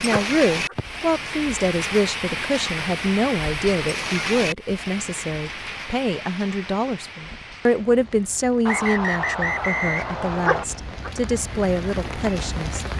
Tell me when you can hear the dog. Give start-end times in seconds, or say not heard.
0.1-0.8, 10.4-11.1.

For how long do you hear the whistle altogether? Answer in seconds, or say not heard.
3 s.